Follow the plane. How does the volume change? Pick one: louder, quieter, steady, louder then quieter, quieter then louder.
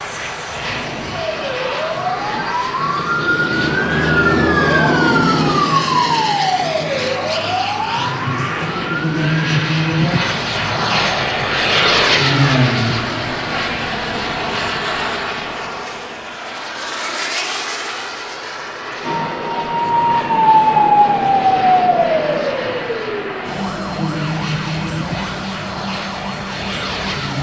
louder then quieter.